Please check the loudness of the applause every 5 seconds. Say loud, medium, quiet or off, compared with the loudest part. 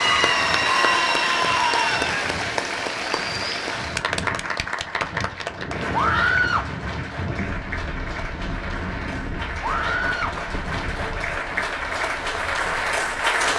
loud, medium, loud.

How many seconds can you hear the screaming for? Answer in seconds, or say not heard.
3 s.